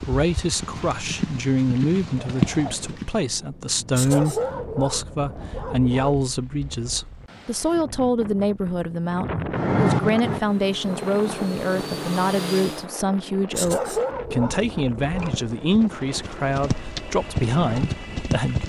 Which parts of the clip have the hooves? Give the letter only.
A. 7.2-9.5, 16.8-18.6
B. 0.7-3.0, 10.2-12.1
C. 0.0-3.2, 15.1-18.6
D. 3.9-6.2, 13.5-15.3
C.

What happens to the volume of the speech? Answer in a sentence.
The loudness of the speech stays about the same.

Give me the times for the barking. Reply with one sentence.
The barking can be heard from 3.9 to 6.2 s and from 13.5 to 15.3 s.